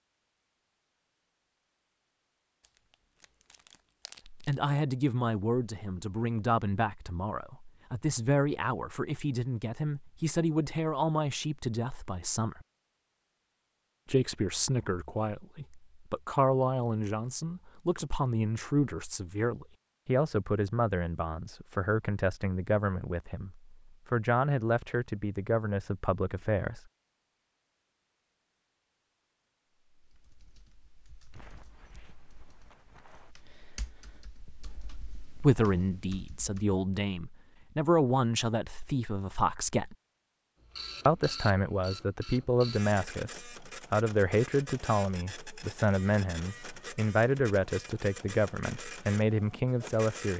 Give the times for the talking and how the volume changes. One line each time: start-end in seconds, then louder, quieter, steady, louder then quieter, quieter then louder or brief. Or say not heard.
4.2-12.7 steady
14.1-26.8 steady
35.4-40.0 louder then quieter
41.0-50.3 steady.